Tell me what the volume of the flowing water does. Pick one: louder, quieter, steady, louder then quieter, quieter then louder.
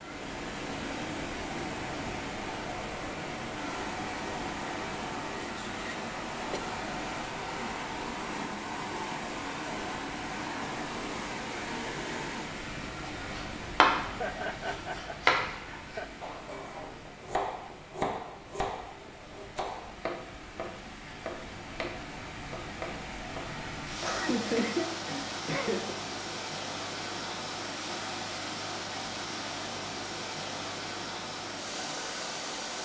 quieter then louder.